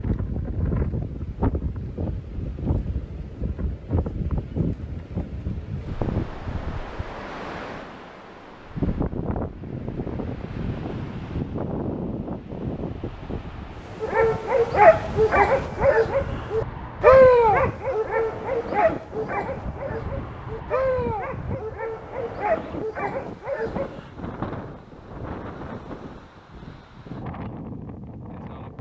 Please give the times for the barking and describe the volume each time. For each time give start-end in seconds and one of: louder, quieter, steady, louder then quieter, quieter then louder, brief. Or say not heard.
14.0-24.1 quieter.